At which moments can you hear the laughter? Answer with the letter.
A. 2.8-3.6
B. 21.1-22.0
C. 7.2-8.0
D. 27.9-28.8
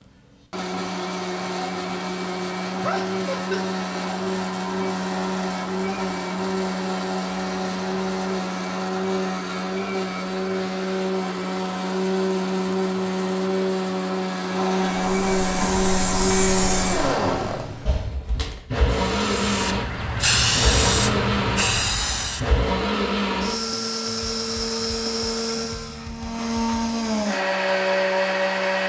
A.